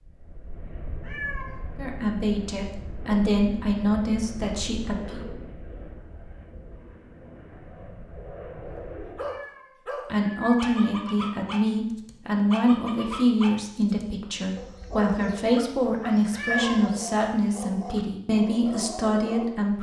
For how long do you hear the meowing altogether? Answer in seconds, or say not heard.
3 s.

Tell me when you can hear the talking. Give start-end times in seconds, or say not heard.
1.8-5.2, 10.1-19.7.